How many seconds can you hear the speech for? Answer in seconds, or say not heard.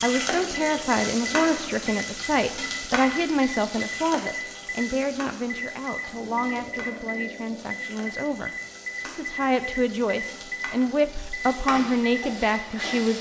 13 s.